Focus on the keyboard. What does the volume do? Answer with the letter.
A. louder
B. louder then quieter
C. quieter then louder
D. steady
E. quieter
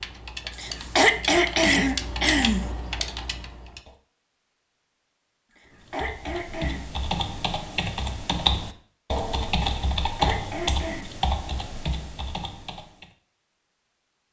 B.